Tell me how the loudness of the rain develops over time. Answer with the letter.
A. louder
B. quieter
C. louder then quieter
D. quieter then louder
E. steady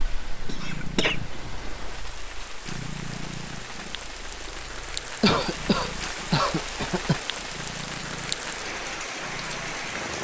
A.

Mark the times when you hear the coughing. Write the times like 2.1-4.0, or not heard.
0.5-1.2, 5.2-7.2.